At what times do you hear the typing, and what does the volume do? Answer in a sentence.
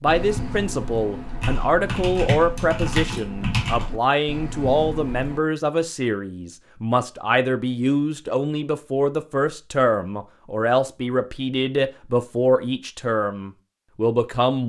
The typing can be heard from 0.1 to 5.4 s, getting louder then quieter.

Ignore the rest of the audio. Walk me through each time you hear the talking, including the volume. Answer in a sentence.
You can hear the talking from 0.0 to 14.6 s, at a steady volume.